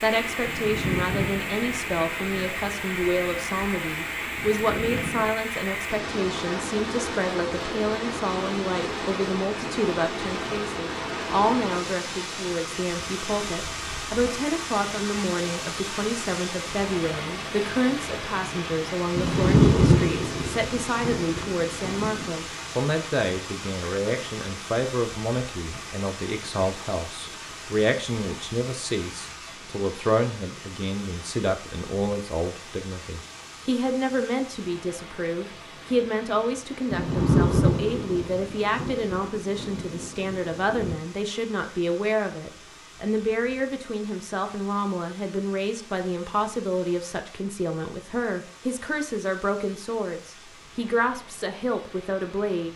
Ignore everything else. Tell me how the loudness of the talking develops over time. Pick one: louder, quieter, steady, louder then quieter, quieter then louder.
steady.